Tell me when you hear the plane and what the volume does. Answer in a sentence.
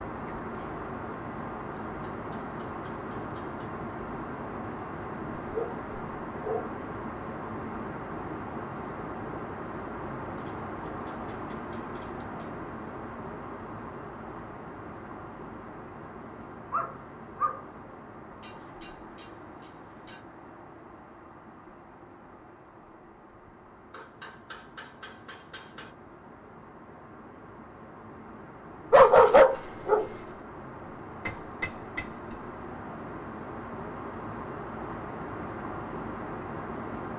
You can hear the plane from 0.0 to 37.1 s, getting quieter then louder.